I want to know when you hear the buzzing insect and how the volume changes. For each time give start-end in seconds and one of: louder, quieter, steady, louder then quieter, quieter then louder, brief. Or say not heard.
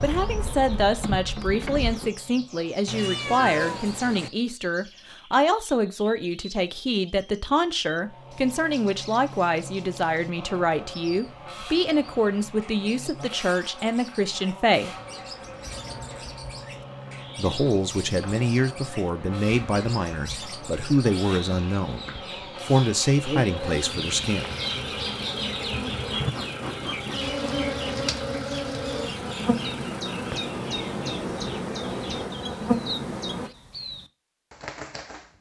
0.0-2.1 brief
14.8-33.5 louder.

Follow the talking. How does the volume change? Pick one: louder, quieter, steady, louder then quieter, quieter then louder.
steady.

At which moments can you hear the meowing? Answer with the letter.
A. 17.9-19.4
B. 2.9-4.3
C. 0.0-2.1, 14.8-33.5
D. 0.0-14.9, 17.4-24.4
B.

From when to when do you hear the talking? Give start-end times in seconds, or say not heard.
0.0-14.9, 17.4-24.4.